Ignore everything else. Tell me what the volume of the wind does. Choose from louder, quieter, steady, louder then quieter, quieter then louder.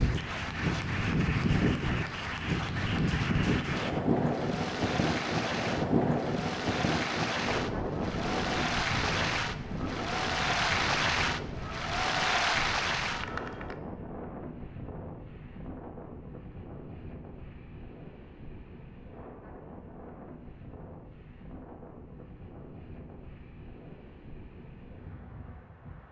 quieter.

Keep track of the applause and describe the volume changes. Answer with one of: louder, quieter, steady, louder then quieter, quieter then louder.
louder.